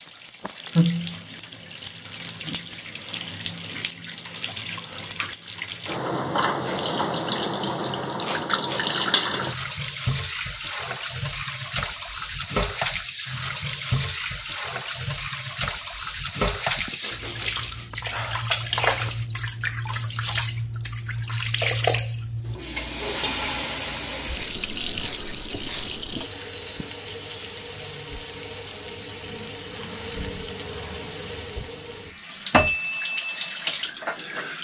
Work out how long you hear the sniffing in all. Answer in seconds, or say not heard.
5 s.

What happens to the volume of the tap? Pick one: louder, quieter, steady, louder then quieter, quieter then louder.
steady.